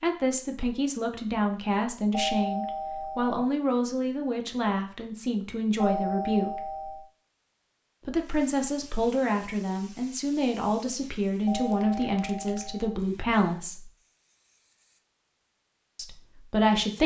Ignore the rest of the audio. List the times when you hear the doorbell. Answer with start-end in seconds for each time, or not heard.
2.1-3.4, 5.8-7.1, 11.4-12.8.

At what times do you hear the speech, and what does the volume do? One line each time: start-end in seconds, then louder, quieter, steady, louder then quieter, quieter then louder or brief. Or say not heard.
0.0-6.5 steady
8.1-13.9 steady
15.9-17.0 brief.